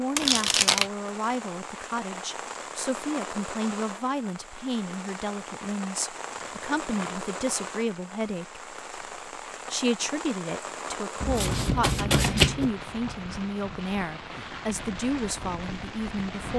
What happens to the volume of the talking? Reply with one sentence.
The volume of the talking stays about the same.